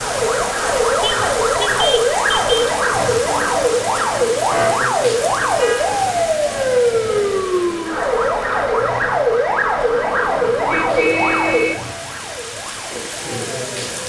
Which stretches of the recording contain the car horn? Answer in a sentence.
The car horn can be heard from 1.0 to 2.7 s, from 5.2 to 5.9 s and from 10.7 to 11.8 s.